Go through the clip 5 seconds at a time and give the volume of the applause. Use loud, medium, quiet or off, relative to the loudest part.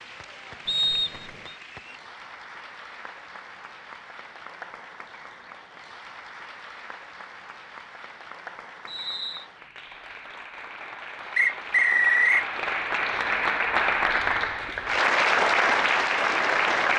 quiet, quiet, medium, loud.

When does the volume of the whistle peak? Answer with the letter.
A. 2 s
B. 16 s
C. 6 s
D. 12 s
D.